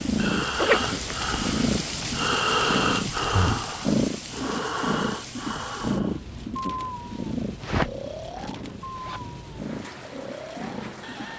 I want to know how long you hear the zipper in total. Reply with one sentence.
You can hear the zipper for 2 seconds altogether.